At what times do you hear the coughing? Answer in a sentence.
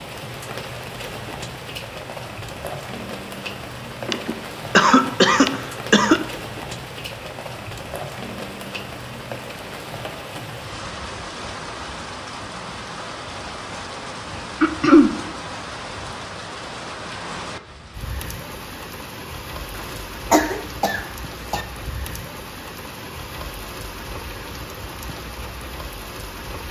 You can hear the coughing from 4.0 to 6.2 s, from 14.6 to 15.2 s and from 19.8 to 21.6 s.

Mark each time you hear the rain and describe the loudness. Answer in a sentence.
You can hear the rain from 0.0 to 26.6 s, at a steady volume.